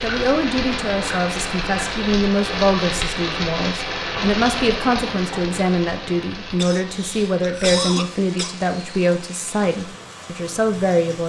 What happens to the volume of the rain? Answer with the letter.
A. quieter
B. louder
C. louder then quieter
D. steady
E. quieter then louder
A.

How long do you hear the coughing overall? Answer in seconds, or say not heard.
2 s.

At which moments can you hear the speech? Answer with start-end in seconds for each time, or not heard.
0.0-11.2.